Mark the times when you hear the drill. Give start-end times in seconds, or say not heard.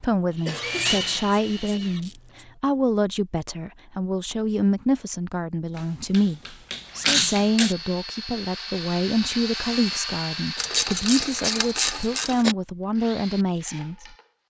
0.0-2.6, 6.8-14.3.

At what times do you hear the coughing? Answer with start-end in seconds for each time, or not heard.
0.5-1.0.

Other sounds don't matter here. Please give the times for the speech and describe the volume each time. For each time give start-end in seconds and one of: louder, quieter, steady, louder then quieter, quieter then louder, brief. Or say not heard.
0.0-14.2 steady.